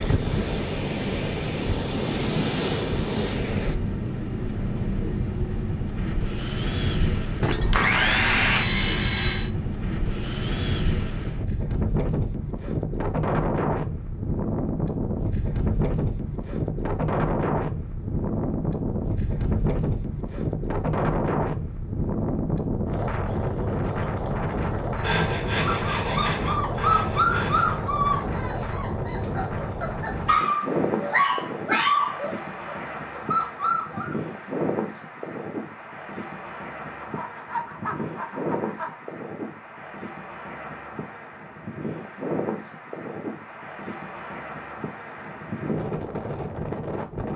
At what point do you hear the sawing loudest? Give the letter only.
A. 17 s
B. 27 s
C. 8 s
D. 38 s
C.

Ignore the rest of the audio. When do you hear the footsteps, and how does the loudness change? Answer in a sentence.
The footsteps can't be heard in this clip.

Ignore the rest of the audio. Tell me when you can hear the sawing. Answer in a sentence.
The sawing can be heard from 7.4 to 9.5 s, from 25.0 to 27.8 s and from 37.0 to 39.0 s.